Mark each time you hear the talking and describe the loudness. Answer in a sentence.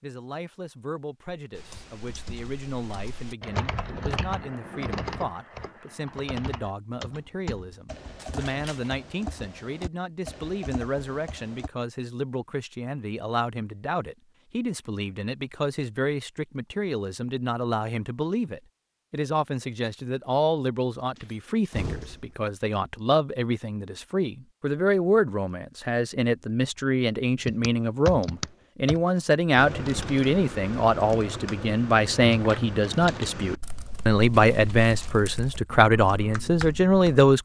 You can hear the talking from 0.0 to 37.3 s, getting louder.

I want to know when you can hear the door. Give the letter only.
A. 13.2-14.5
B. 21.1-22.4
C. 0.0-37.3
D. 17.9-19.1
B.